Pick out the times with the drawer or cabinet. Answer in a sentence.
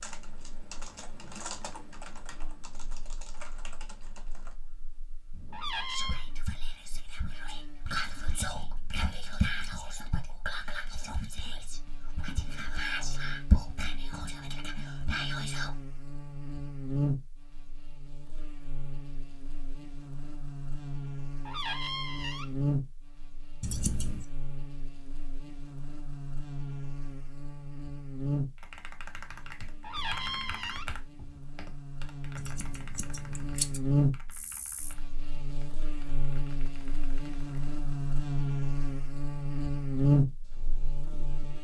The drawer or cabinet can be heard from 5.5 to 6.3 s, from 21.4 to 22.6 s and from 29.8 to 30.9 s.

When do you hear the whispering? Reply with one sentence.
The whispering can be heard from 5.3 to 15.7 s.